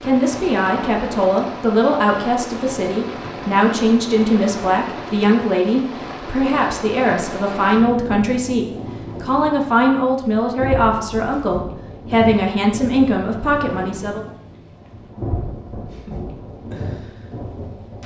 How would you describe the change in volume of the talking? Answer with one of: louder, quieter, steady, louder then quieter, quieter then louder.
steady.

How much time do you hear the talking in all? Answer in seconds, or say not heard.
14 s.